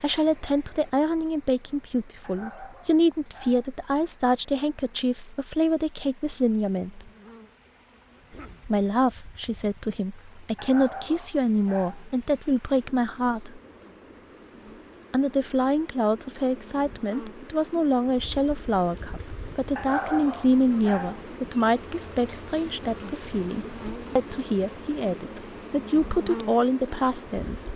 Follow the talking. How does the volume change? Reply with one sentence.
The loudness of the talking stays about the same.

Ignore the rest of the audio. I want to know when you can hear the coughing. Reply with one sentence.
You can hear the coughing from 8.2 to 8.7 s.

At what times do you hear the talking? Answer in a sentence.
The talking can be heard from 0.0 to 7.1 s, from 8.7 to 13.6 s and from 15.1 to 27.6 s.